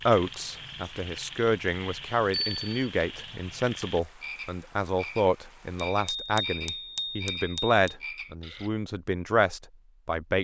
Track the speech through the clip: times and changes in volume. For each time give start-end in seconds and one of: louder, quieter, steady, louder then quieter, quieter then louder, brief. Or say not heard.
0.1-10.3 steady.